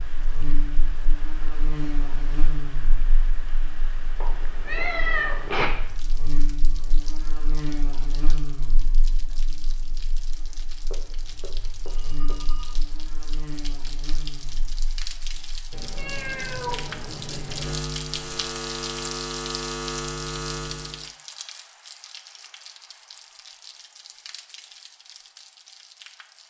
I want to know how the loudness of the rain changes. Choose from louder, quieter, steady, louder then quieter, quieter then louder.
louder then quieter.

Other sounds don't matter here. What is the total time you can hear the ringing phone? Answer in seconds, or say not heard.
2 s.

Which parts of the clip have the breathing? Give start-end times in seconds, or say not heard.
not heard.